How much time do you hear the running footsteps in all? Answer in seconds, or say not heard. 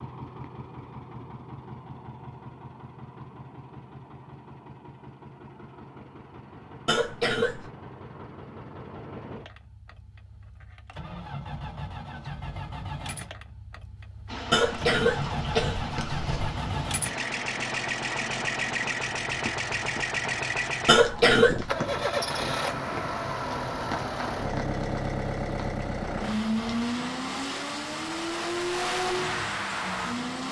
not heard.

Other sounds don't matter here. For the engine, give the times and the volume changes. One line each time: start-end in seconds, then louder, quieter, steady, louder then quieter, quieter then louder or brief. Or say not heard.
0.0-30.4 louder.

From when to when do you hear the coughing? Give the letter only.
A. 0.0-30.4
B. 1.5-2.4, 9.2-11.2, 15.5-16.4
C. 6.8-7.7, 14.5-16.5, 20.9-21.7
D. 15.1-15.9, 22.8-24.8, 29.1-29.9
C.